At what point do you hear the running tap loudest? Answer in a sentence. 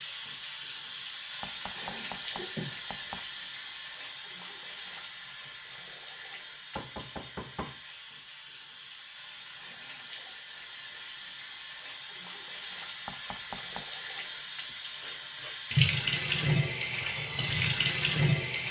The volume of the running tap peaks at 16 seconds.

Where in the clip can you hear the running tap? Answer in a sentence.
The running tap can be heard from 0.0 to 18.6 s.